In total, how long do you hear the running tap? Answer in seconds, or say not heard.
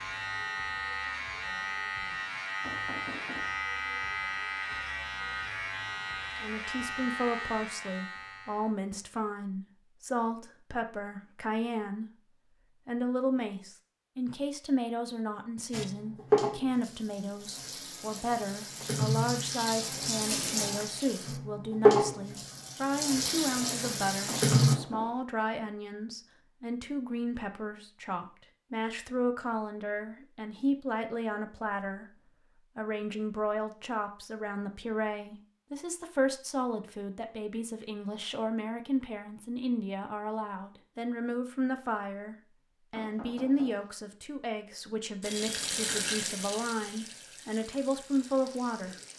13 s.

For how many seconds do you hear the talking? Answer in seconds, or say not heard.
42 s.